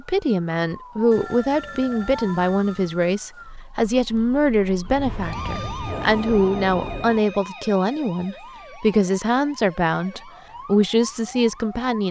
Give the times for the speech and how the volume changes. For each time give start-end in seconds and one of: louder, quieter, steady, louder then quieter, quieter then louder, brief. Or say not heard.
0.0-12.0 steady.